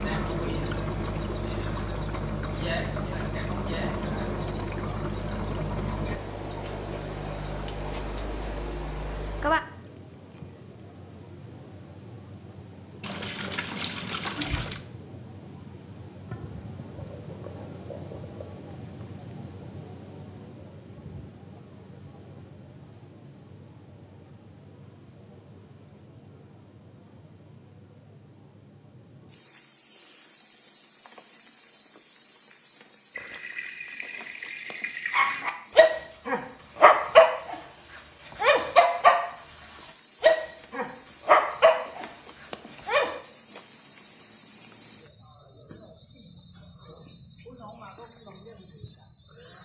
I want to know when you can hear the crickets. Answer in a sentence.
The crickets can be heard from 0.0 to 49.6 s.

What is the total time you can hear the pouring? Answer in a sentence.
The pouring can be heard for 4 seconds in total.